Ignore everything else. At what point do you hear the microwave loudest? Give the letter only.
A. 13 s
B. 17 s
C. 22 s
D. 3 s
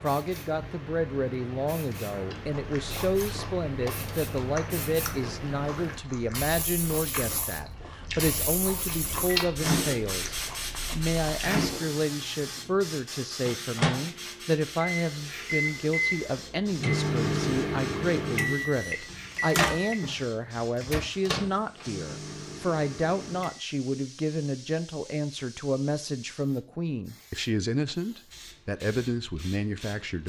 B.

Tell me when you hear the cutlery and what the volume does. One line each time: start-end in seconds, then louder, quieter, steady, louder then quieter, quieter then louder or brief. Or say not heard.
not heard.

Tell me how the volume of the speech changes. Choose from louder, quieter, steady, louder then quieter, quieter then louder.
steady.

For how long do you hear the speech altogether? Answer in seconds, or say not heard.
30 s.